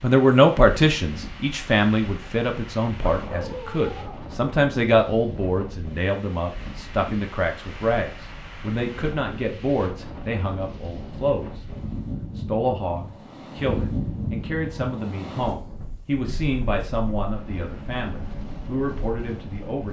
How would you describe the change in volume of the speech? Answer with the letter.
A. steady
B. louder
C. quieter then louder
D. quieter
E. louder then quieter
D.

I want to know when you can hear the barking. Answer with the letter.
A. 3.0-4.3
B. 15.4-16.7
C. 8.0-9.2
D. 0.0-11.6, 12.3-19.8
A.